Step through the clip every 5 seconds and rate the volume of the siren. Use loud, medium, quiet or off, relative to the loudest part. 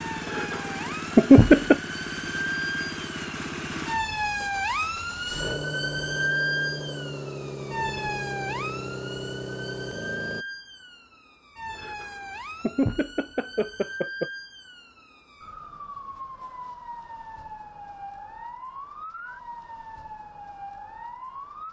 loud, loud, medium, medium, medium.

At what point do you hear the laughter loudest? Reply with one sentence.
The volume of the laughter peaks at 1 second.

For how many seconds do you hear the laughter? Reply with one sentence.
The laughter can be heard for 4 seconds in total.